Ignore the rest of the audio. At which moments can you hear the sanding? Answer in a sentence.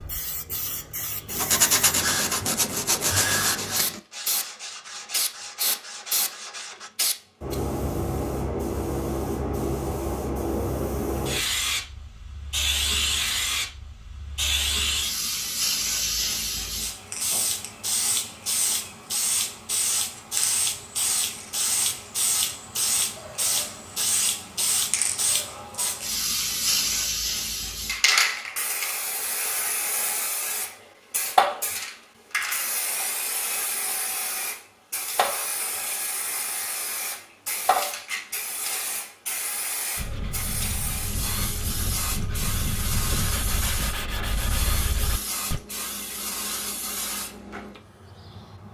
You can hear the sanding from 1.2 to 6.9 s and from 40.0 to 45.6 s.